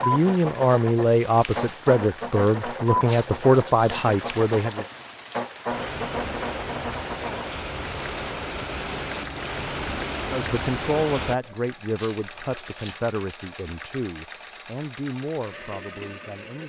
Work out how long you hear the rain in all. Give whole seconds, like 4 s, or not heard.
11 s.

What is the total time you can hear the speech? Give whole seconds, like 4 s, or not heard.
11 s.